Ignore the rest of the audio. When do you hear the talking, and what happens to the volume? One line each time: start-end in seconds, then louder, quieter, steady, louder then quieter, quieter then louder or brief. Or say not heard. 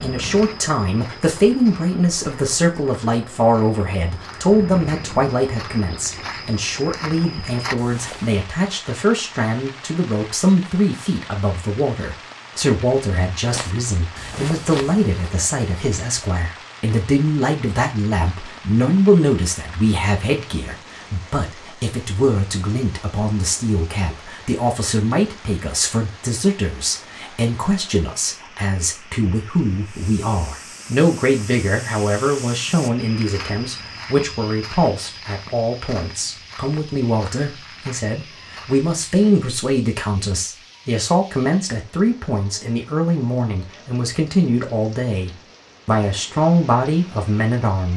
0.0-47.9 steady.